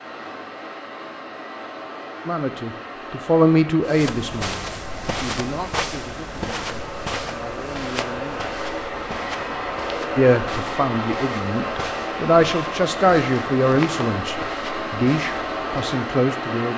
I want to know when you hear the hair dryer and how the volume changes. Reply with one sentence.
The hair dryer can be heard from 0.0 to 16.7 s, getting louder.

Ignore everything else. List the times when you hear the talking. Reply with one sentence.
You can hear the talking from 2.2 to 8.4 s and from 10.2 to 16.7 s.